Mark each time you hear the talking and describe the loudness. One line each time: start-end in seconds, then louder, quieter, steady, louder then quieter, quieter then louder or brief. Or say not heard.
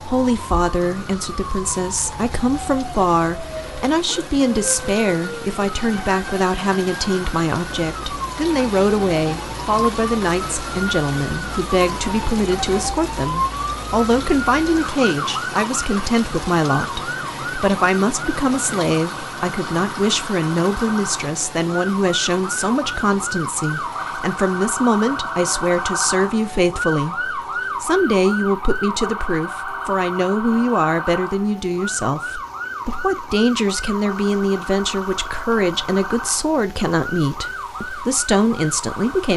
0.1-39.3 steady.